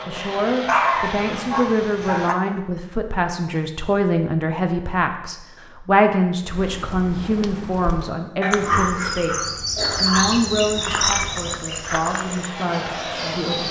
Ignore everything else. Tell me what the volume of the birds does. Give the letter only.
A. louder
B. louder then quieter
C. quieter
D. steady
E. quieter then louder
B.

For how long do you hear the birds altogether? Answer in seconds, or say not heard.
7 s.